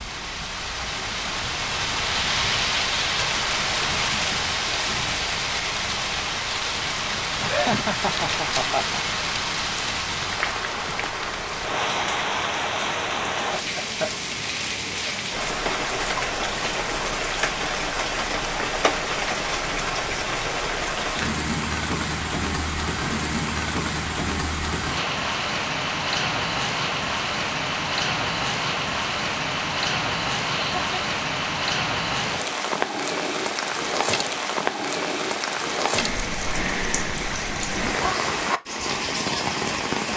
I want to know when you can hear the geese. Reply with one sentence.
You can't hear the geese here.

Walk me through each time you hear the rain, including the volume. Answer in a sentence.
The rain can be heard from 0.0 to 40.1 s, at a steady volume.